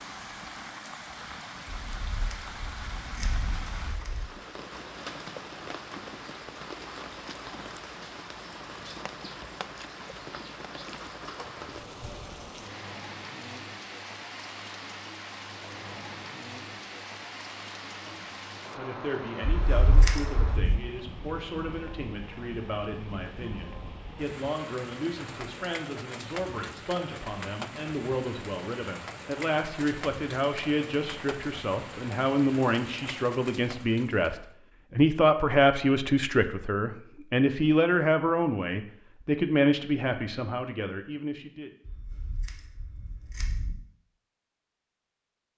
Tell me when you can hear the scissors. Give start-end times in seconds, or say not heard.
1.9-4.3, 19.4-20.8, 41.9-43.8.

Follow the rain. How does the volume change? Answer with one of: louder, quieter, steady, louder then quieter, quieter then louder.
steady.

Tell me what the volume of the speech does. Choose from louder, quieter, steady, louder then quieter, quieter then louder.
louder.